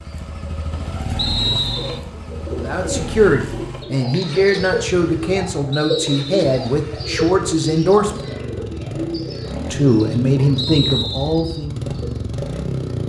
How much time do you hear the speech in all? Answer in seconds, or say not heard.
8 s.